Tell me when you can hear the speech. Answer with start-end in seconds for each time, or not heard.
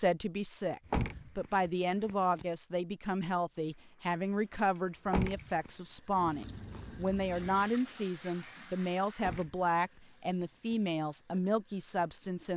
0.0-12.5.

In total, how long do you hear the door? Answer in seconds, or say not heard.
4 s.